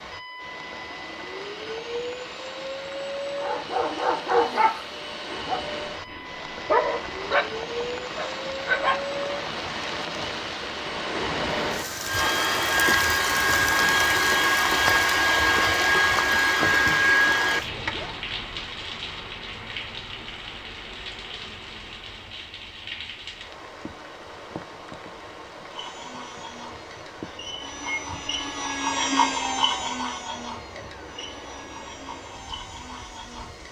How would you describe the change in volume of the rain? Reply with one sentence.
The loudness of the rain goes up, then down.